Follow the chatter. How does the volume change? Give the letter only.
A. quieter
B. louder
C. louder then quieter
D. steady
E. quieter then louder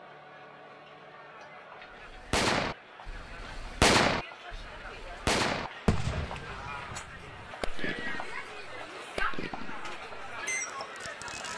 B.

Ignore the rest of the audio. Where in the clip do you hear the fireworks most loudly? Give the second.
4 s.